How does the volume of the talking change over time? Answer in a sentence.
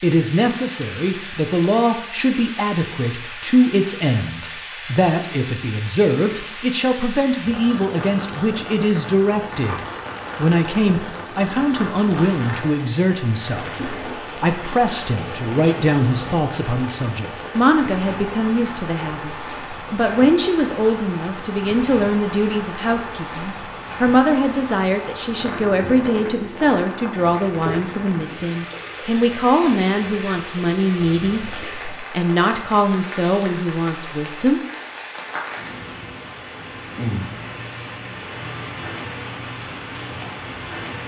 The volume of the talking stays about the same.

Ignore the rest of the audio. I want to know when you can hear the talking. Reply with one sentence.
You can hear the talking from 0.0 to 34.6 s.